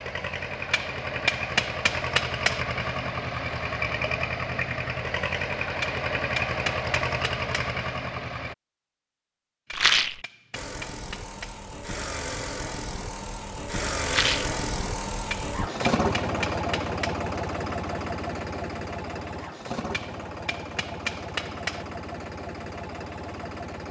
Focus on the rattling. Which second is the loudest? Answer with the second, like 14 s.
10 s.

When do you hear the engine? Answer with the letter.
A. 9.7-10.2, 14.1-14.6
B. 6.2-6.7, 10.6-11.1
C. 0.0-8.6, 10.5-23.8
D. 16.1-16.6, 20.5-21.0
C.